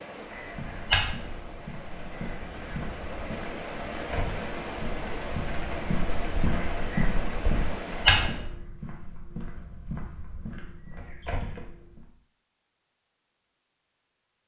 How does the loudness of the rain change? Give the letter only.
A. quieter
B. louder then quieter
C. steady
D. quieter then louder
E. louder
E.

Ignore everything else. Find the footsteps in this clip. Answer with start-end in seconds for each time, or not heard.
0.3-12.1.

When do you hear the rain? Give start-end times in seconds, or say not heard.
0.0-8.5.